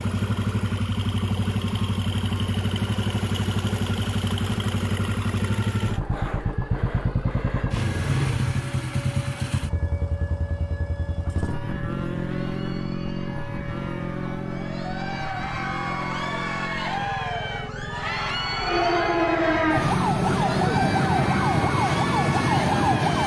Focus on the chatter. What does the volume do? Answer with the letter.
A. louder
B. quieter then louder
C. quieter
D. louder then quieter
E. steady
A.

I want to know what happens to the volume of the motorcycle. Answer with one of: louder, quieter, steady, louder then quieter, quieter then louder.
quieter.